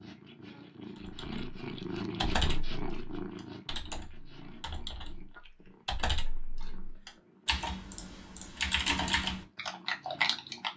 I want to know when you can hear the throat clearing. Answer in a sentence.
You can hear the throat clearing from 0.5 to 1.0 s.